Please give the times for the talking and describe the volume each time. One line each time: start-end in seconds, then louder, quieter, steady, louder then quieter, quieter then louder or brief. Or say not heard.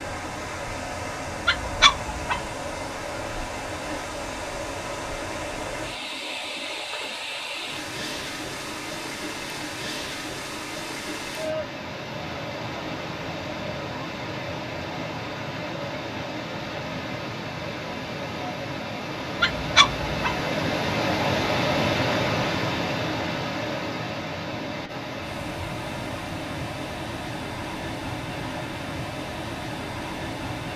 not heard.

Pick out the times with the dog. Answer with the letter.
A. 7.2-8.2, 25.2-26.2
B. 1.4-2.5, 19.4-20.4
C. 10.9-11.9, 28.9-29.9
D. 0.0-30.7
B.